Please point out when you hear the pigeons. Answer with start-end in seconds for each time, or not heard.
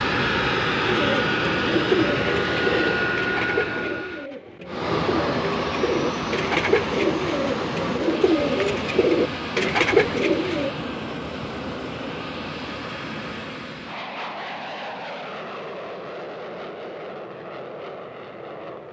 0.8-10.7.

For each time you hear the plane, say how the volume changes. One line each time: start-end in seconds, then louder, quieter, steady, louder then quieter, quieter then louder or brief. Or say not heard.
0.0-18.8 quieter.